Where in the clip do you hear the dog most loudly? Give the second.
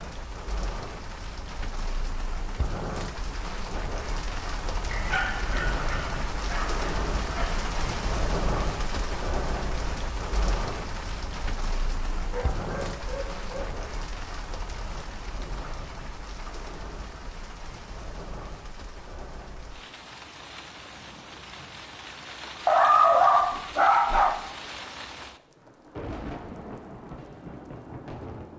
23 s.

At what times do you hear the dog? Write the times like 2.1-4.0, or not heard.
4.9-7.5, 12.1-13.7, 22.6-24.4.